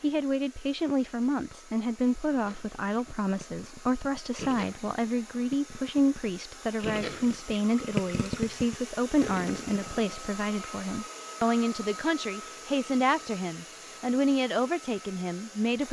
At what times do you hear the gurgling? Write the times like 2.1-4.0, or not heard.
2.3-10.2.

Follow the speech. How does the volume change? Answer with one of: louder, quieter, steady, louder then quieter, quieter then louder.
steady.